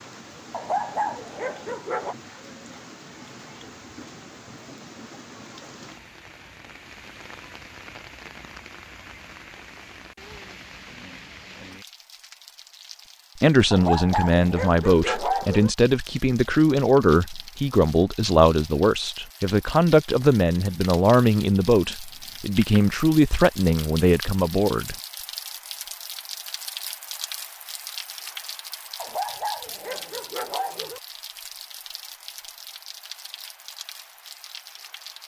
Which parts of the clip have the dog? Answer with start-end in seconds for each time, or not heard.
0.5-2.1, 13.7-15.7, 28.9-31.0.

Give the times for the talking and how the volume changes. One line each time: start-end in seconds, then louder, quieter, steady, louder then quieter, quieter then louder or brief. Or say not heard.
13.4-24.9 steady.